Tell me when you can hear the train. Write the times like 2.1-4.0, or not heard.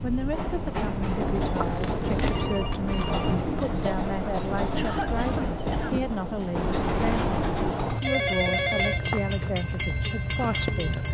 0.0-11.0.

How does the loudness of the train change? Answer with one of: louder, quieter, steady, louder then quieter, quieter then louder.
steady.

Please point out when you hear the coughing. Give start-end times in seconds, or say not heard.
4.8-6.1.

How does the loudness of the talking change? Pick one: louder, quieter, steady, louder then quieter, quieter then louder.
steady.